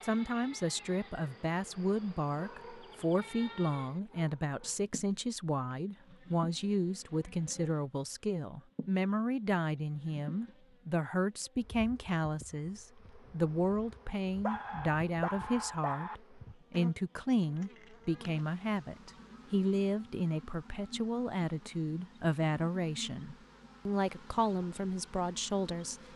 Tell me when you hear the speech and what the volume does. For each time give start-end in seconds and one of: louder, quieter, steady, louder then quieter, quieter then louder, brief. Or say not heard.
0.0-25.9 steady.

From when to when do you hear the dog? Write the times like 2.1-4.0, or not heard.
2.3-4.8, 14.4-16.1.